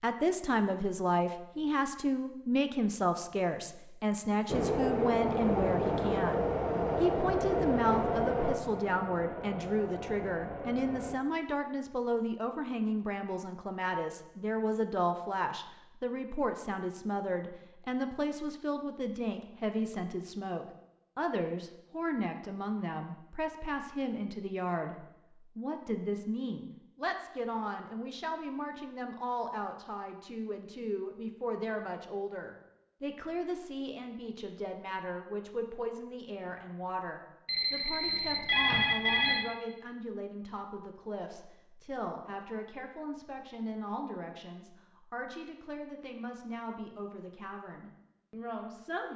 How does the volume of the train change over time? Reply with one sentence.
The volume of the train goes down.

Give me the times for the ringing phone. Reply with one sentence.
You can hear the ringing phone from 37.5 to 39.5 s.